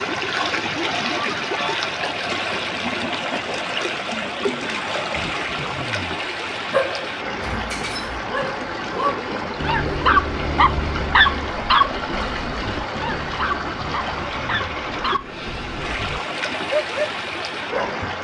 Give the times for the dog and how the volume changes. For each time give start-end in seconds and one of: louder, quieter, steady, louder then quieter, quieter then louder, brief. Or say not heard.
6.7-18.1 louder then quieter.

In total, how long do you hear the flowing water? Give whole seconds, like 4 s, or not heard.
18 s.